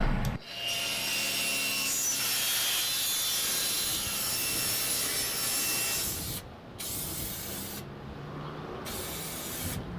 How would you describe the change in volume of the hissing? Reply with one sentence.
The volume of the hissing stays about the same.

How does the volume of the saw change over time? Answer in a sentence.
The volume of the saw stays about the same.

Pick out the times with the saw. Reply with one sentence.
You can hear the saw from 0.4 to 6.2 s.